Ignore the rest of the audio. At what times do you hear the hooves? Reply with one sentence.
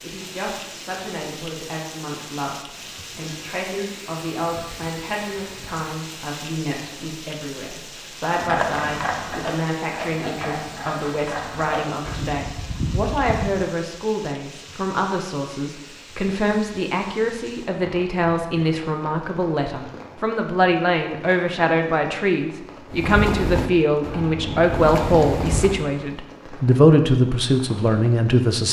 The hooves can be heard from 8.2 to 13.6 s and from 22.9 to 25.9 s.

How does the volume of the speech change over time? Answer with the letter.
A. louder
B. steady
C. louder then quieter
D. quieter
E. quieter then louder
A.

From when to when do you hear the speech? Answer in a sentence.
The speech can be heard from 0.0 to 28.6 s.